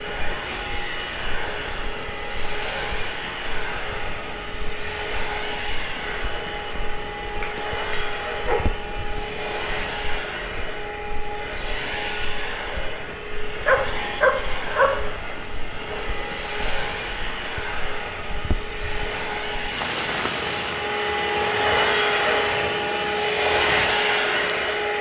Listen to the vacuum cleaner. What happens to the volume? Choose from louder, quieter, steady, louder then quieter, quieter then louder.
louder.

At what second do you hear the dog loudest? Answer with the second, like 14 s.
14 s.